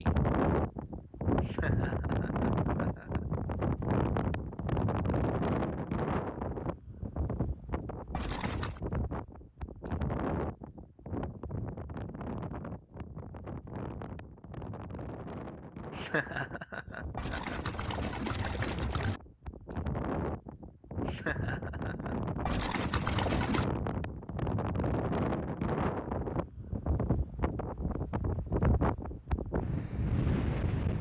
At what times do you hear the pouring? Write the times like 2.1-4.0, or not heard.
8.1-8.8, 17.1-19.2, 22.4-23.7.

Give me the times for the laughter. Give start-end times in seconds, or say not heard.
1.4-3.2, 15.9-17.7, 21.1-22.1.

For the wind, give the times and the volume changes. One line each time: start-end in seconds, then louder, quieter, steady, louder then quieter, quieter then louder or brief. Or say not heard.
0.0-30.9 quieter then louder.